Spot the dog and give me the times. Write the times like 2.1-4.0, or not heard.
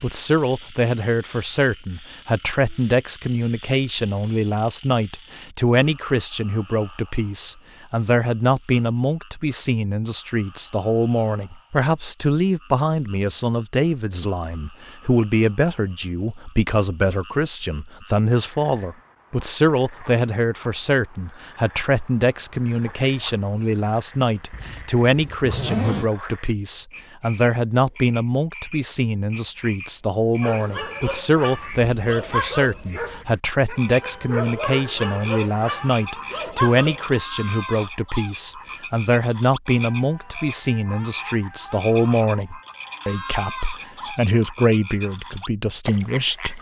30.4-37.1.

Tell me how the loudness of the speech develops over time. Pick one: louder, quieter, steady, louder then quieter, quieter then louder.
steady.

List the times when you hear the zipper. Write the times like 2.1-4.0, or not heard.
24.5-26.1.